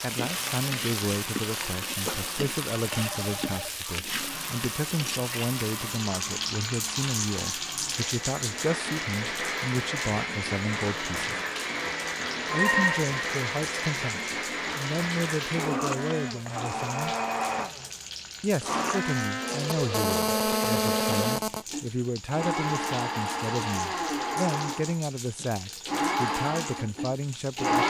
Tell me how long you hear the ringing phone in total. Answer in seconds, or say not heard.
4 s.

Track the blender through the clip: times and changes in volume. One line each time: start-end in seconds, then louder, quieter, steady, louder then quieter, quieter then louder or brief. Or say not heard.
0.2-27.8 louder.